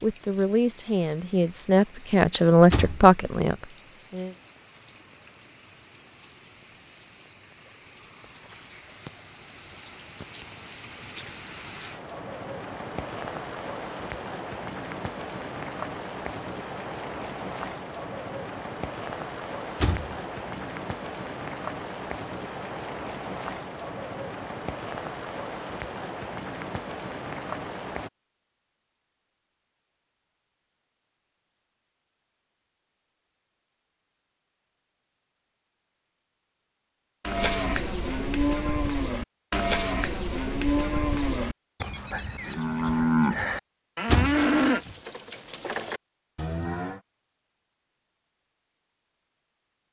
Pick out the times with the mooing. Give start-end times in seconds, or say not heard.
37.2-47.0.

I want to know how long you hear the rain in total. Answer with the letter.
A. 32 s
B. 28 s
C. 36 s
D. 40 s
B.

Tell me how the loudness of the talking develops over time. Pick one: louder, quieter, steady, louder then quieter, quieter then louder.
louder then quieter.